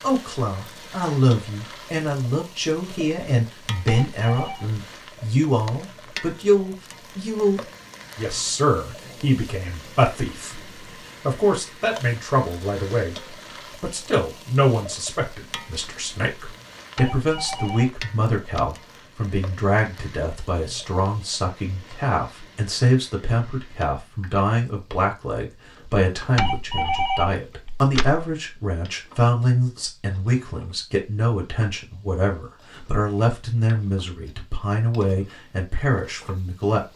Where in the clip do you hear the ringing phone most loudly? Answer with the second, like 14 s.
27 s.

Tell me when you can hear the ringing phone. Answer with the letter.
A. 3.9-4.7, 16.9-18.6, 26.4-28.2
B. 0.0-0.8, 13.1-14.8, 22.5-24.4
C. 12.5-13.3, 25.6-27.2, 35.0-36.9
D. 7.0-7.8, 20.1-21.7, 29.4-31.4
A.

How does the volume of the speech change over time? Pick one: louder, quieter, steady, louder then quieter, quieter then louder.
steady.